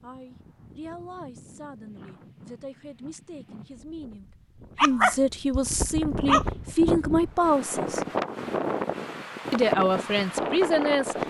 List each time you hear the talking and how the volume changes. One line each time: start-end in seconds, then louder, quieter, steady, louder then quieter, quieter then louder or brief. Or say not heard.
0.0-8.0 louder
9.5-11.2 brief.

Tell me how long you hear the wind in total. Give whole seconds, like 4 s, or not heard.
11 s.